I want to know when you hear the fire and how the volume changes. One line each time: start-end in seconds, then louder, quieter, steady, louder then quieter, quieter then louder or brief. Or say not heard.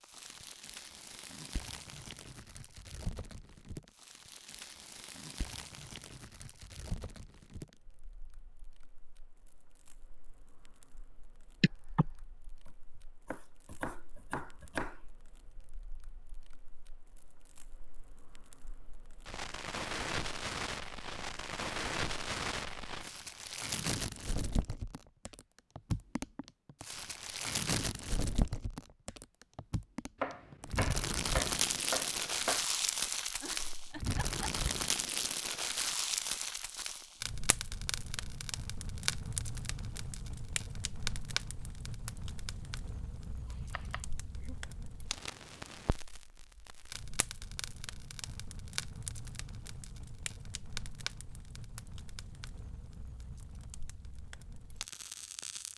0.0-55.7 louder then quieter.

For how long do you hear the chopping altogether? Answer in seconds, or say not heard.
5 s.